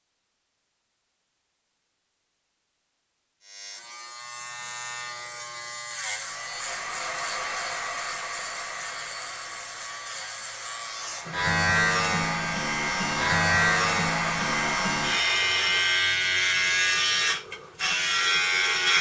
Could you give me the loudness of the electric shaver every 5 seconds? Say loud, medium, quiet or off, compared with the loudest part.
quiet, quiet, loud, loud.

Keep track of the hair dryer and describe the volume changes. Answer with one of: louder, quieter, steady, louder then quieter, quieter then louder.
quieter then louder.